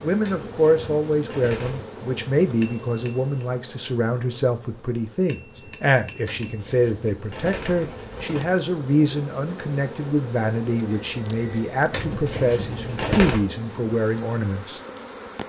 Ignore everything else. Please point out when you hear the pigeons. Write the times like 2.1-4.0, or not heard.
0.2-1.9, 6.2-8.6, 11.9-13.4.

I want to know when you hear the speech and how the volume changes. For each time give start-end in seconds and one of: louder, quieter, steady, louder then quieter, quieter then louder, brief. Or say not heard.
0.0-14.8 steady.